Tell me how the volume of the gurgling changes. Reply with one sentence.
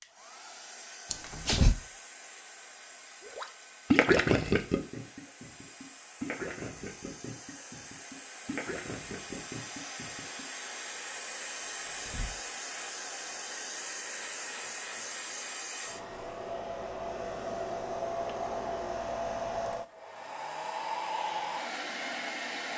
The volume of the gurgling goes down.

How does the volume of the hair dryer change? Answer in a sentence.
The volume of the hair dryer goes up.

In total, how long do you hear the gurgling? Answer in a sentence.
The gurgling can be heard for 7 seconds in total.